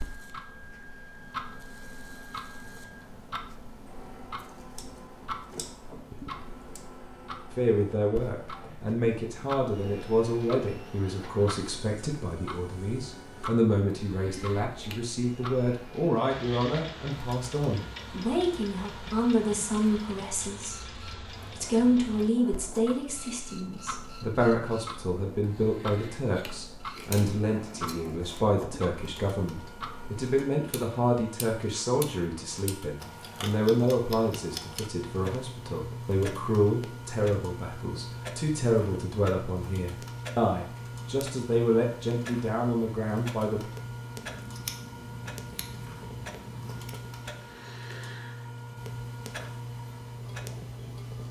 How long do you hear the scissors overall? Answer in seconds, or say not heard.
6 s.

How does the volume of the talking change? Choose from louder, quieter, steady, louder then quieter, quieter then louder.
steady.